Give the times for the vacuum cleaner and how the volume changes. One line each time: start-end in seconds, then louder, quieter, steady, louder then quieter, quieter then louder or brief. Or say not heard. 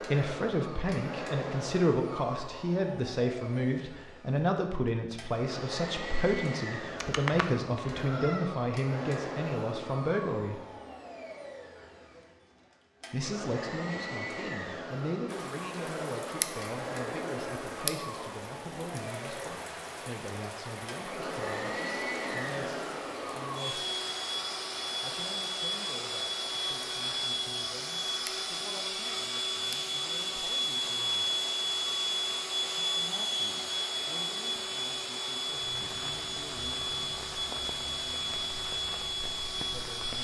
0.0-40.1 louder.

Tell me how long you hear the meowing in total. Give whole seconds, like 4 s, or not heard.
2 s.